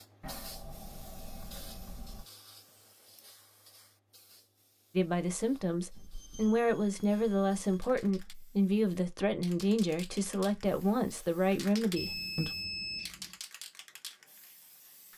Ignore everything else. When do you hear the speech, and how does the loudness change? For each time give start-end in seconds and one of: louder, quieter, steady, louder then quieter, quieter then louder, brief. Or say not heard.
5.0-12.5 steady.